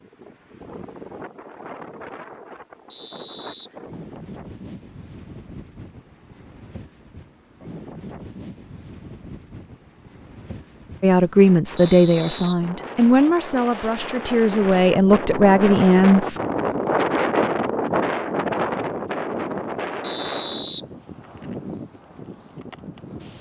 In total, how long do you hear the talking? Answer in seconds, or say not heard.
5 s.